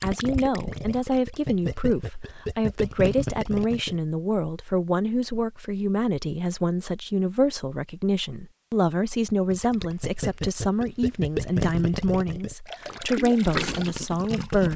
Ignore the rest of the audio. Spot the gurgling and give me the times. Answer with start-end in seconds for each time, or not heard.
0.0-4.0, 9.5-14.7.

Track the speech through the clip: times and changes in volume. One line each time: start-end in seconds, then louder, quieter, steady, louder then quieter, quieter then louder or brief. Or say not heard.
0.0-14.7 steady.